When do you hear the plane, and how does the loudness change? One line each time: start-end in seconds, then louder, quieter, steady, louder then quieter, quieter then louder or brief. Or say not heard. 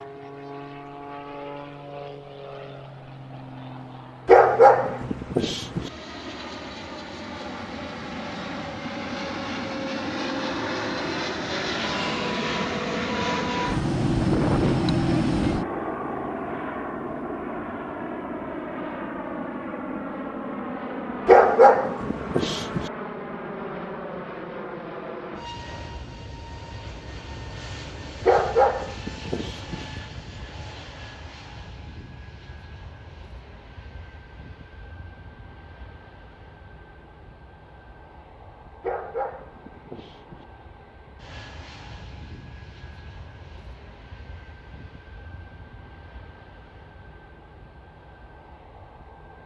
0.0-49.4 louder then quieter.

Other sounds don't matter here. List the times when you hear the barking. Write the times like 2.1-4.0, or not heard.
4.2-5.9, 21.2-22.9, 28.2-29.9, 38.8-40.5.